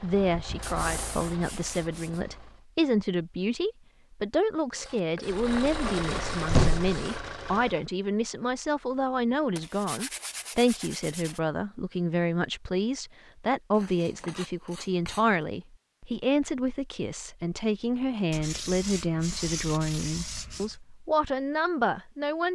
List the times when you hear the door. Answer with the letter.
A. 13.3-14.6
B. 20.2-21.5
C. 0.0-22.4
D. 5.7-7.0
D.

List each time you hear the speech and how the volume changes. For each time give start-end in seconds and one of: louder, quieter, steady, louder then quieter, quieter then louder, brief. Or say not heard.
0.0-22.4 steady.